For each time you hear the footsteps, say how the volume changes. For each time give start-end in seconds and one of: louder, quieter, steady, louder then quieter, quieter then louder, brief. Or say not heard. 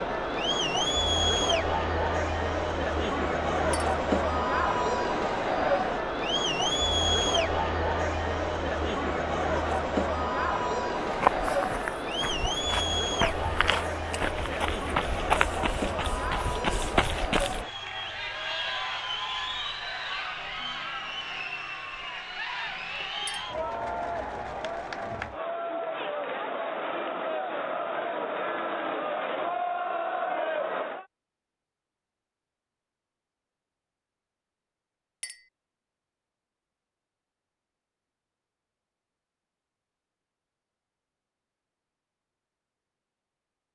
11.0-17.6 louder.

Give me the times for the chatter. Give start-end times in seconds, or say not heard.
0.0-31.1.